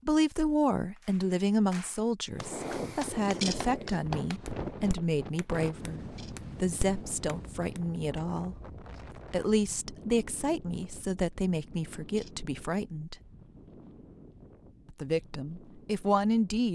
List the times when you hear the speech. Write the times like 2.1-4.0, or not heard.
0.1-8.6, 9.3-13.2, 14.9-16.7.